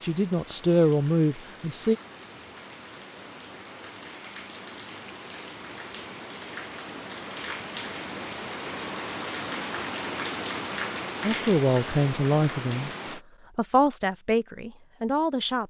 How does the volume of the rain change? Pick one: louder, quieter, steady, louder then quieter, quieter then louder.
louder.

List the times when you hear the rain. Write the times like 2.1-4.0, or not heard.
0.0-13.2.